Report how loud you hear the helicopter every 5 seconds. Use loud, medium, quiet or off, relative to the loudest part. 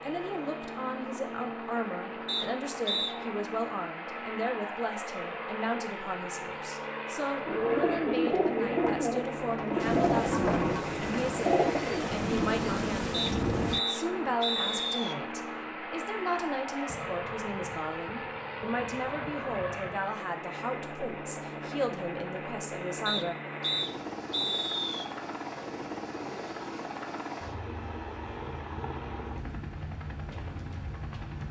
loud, loud, loud, loud, loud, loud, medium.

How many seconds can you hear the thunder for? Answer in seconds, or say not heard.
7 s.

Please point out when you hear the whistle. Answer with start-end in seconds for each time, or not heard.
2.2-3.1, 13.1-15.2, 23.1-25.1.